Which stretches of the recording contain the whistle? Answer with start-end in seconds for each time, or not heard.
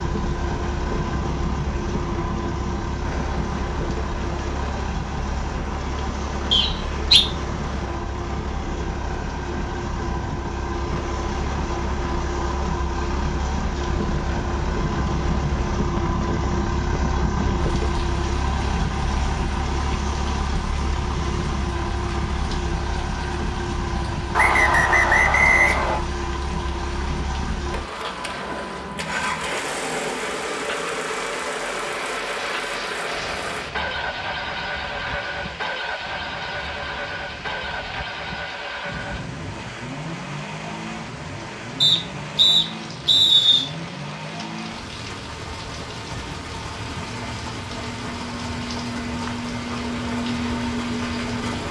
6.5-7.2, 24.4-26.0, 41.8-43.6.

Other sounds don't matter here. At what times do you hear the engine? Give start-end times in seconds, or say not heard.
0.0-51.6.